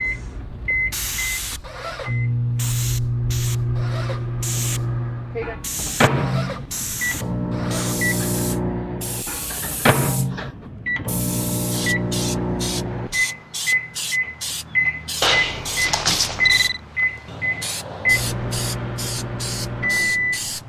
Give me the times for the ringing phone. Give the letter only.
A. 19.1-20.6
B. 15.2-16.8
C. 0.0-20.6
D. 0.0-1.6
B.